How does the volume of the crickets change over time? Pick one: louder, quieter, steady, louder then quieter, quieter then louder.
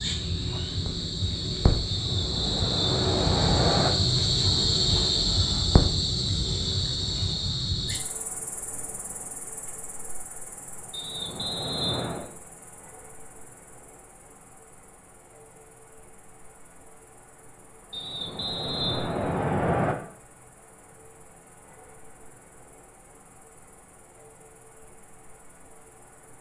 quieter.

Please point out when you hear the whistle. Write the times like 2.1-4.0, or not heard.
1.9-3.9, 10.9-12.2, 17.9-19.9.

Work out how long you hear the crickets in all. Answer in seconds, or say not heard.
26 s.